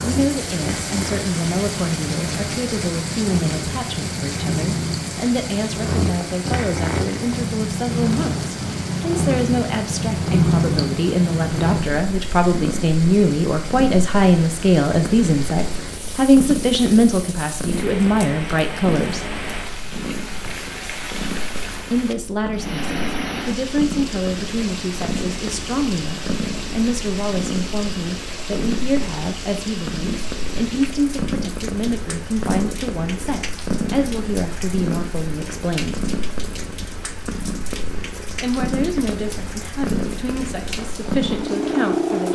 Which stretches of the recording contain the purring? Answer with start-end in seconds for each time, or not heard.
0.0-42.2.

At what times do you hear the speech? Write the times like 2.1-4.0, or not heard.
0.0-19.3, 21.8-36.0, 38.4-42.2.